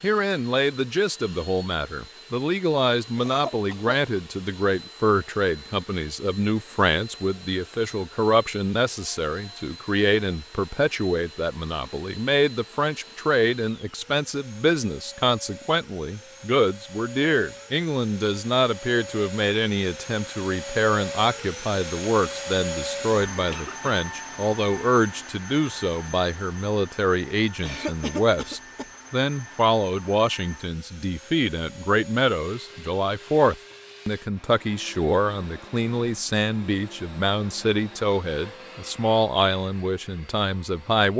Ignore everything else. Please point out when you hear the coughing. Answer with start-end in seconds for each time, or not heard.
3.1-4.0, 23.4-23.9, 27.6-28.9.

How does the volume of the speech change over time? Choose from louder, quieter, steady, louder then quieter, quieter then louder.
steady.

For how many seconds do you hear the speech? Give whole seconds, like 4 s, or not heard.
41 s.